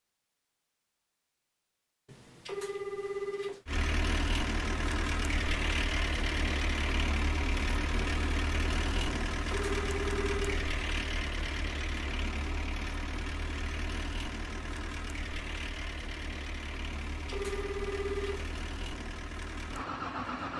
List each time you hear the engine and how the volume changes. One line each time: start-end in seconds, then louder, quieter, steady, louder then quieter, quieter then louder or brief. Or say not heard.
3.6-20.5 quieter.